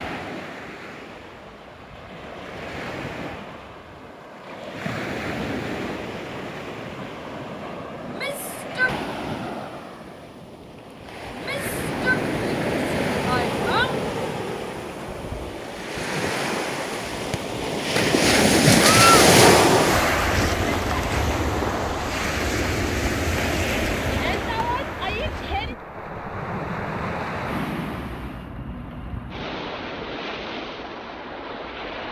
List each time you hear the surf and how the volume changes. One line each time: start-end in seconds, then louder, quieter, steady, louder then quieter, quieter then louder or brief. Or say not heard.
0.0-32.0 louder then quieter.